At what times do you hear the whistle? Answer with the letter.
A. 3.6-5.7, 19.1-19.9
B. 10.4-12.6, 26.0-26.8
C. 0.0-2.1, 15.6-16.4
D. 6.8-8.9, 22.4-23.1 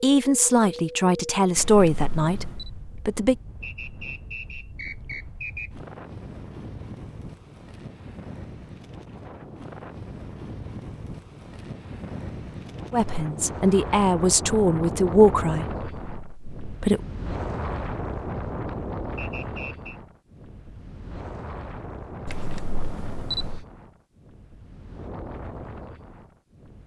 A.